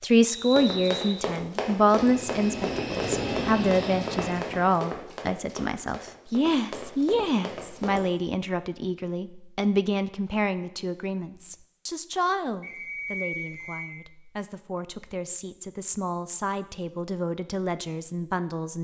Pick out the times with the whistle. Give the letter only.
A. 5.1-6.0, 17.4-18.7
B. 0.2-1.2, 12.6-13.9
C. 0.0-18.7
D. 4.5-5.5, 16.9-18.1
B.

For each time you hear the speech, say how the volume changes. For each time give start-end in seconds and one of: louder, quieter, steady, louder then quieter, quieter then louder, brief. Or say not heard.
0.0-18.7 quieter.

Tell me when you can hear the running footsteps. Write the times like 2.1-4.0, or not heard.
0.5-8.0.